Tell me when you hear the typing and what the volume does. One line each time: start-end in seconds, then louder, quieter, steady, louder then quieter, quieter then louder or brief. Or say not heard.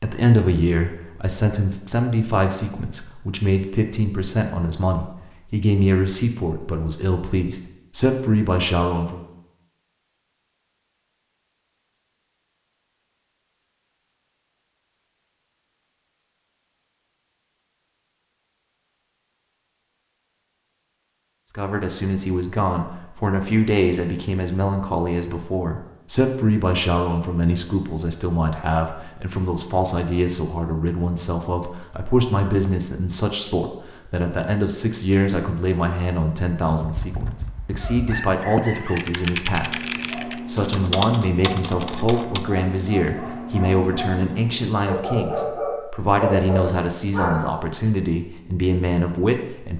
36.8-42.5 louder then quieter.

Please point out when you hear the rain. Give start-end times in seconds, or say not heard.
not heard.